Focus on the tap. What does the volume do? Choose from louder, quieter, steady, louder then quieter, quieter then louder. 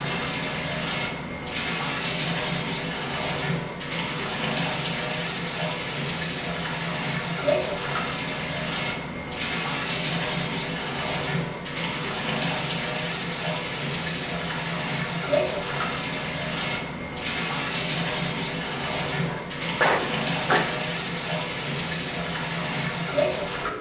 steady.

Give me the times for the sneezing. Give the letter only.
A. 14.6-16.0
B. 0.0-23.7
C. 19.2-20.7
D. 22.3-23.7
C.